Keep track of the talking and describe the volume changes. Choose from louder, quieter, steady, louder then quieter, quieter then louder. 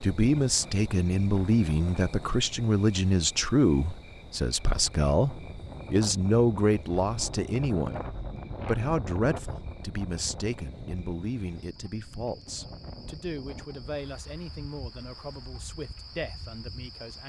quieter.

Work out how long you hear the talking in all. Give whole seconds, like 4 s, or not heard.
17 s.